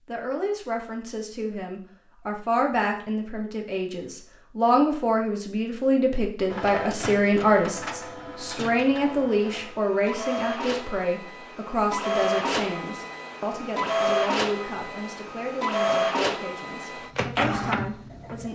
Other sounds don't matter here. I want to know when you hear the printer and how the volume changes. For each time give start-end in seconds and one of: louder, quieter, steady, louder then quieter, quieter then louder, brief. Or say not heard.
6.5-18.5 louder.